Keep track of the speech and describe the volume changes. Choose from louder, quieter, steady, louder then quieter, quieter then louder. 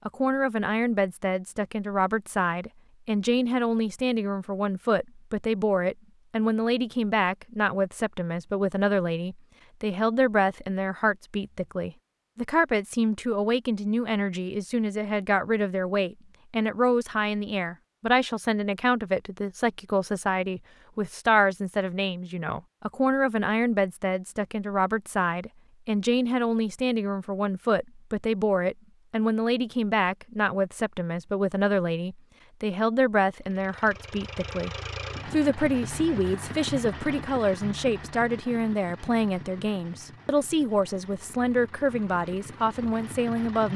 steady.